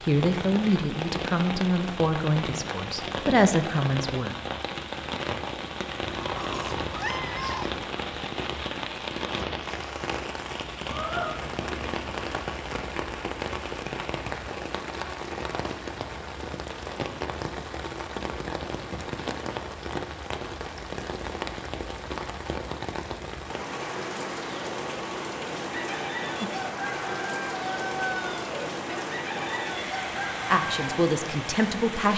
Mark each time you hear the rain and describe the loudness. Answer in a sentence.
The rain can be heard from 0.0 to 32.1 s, at a steady volume.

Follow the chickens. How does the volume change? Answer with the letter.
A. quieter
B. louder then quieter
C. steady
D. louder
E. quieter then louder
C.